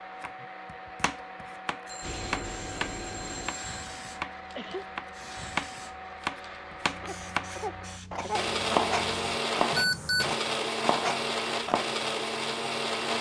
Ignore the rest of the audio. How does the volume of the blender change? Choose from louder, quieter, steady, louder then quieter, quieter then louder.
louder.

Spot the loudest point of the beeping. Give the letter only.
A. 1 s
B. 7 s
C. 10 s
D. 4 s
C.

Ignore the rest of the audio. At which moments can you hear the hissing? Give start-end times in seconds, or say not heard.
2.0-9.2.